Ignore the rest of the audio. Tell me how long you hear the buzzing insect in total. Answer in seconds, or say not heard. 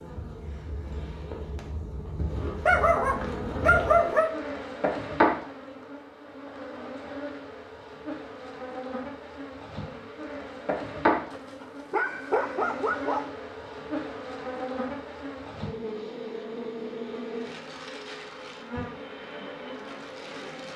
21 s.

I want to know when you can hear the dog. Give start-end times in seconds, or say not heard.
2.6-4.3, 11.3-13.3.